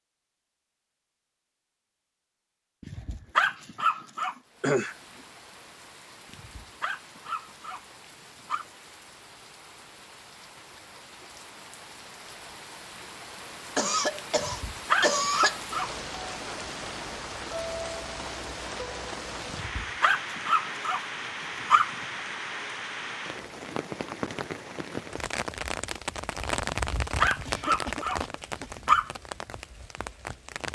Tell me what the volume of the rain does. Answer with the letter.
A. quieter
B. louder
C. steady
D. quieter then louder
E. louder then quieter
B.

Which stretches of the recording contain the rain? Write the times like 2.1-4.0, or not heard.
4.4-30.7.